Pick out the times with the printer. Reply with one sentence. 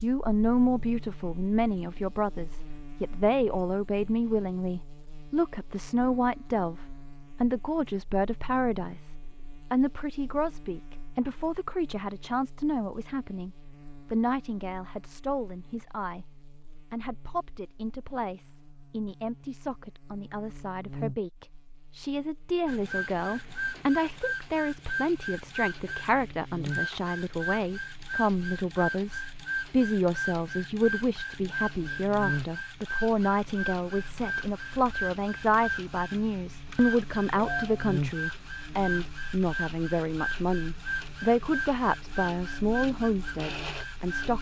The printer can be heard from 22.6 to 44.3 s.